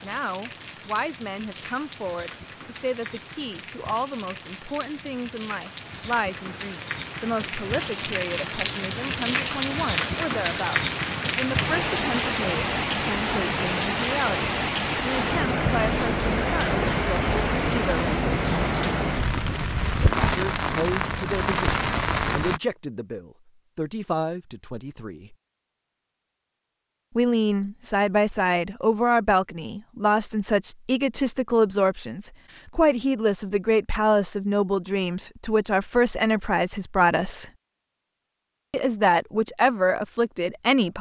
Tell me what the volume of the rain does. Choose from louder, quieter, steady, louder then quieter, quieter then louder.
louder.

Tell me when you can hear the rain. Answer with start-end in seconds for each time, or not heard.
0.0-22.6.